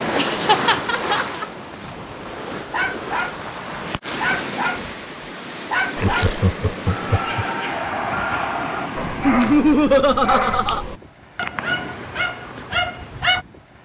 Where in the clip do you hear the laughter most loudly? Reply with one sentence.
The volume of the laughter peaks at 10 seconds.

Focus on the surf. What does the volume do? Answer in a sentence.
The loudness of the surf goes down.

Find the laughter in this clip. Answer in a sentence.
You can hear the laughter from 0.1 to 1.4 s, from 6.0 to 7.5 s and from 9.2 to 10.8 s.